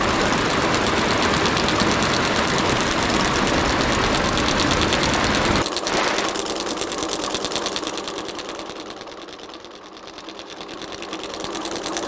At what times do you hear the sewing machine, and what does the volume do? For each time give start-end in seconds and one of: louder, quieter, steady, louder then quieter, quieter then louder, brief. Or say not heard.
0.0-12.0 quieter.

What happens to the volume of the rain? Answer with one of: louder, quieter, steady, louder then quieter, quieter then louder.
steady.